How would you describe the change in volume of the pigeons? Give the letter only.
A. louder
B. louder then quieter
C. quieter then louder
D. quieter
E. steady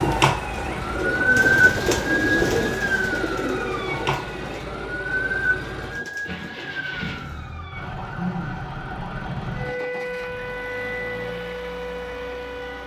D.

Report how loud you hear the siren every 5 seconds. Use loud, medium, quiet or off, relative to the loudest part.
loud, medium, medium.